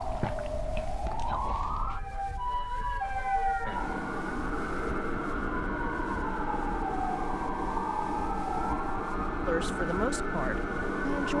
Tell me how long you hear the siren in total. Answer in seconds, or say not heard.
11 s.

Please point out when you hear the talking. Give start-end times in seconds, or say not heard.
9.4-11.3.